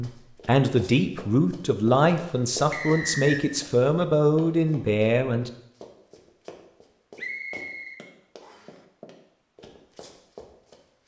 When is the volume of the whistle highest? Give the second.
3 s.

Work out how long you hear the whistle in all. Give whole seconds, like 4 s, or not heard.
2 s.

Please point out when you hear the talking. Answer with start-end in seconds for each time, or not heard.
0.0-5.5.